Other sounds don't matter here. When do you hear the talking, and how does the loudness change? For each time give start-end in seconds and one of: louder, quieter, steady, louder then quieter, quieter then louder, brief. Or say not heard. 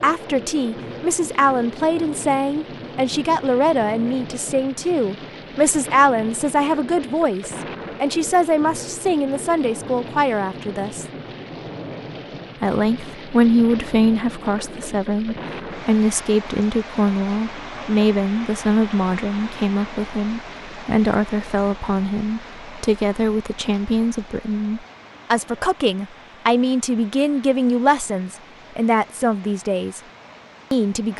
0.0-11.1 steady
12.6-30.0 steady
30.7-31.1 brief.